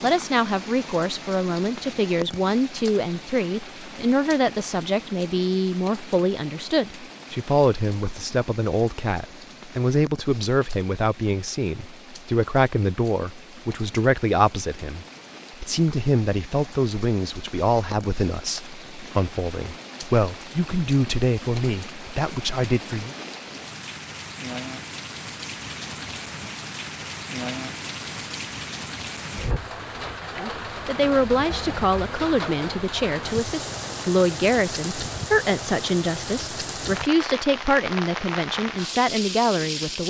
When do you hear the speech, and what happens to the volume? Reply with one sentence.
The speech can be heard from 0.0 to 23.1 s, at a steady volume; and from 30.4 to 40.0 s, at a steady volume.